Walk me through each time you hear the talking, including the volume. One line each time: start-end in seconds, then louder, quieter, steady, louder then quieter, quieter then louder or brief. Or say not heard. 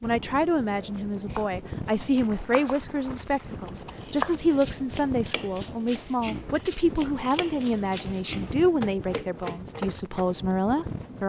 0.0-11.2 steady.